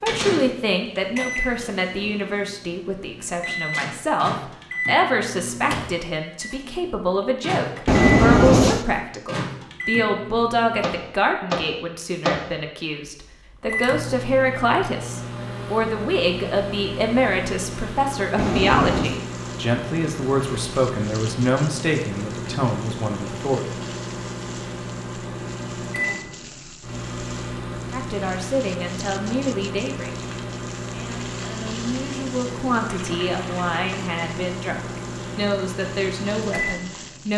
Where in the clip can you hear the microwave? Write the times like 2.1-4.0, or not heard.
0.0-37.3.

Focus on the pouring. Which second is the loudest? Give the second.
8 s.